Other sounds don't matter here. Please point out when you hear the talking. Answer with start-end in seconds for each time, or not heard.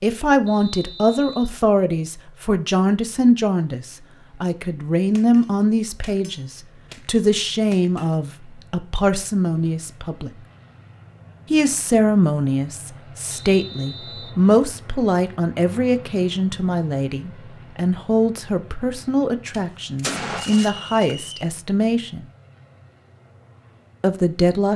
0.0-10.3, 11.5-22.2, 24.0-24.7.